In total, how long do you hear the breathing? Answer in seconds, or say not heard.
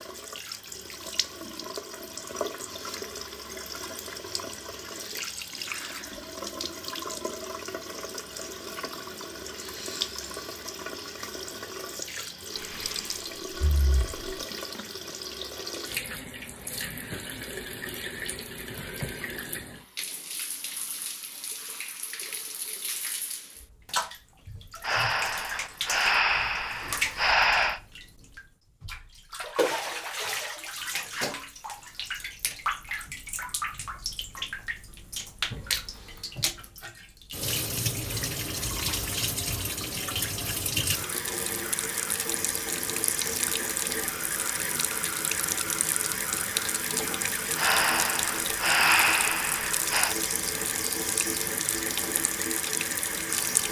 7 s.